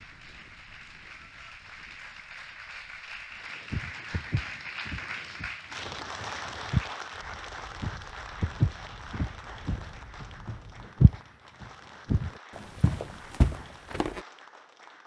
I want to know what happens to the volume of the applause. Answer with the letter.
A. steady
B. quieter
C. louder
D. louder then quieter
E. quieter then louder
D.